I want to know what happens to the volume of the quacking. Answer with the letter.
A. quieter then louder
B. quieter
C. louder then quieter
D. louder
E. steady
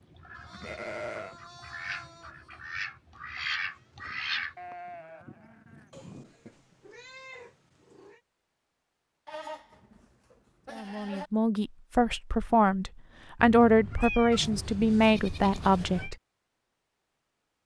D.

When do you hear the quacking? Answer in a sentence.
You can hear the quacking from 0.0 to 4.5 s.